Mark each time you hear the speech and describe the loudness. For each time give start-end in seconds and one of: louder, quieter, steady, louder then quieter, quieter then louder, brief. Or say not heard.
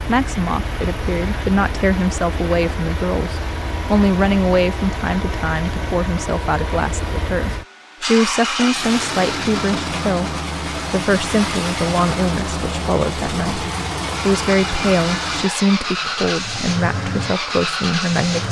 0.1-18.4 steady.